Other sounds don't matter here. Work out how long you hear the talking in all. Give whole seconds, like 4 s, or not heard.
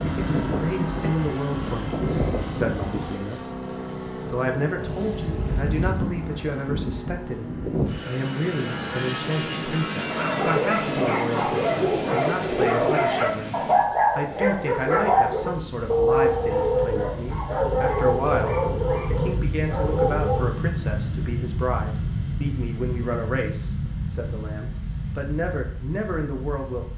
26 s.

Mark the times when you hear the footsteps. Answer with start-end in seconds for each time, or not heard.
not heard.